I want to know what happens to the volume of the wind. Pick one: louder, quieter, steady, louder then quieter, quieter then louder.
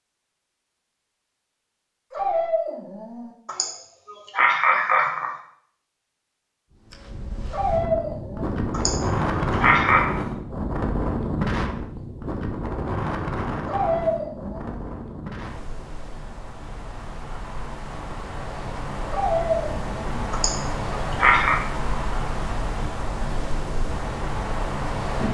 quieter then louder.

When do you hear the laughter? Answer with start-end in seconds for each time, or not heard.
3.5-5.3, 8.7-10.1, 20.3-21.6.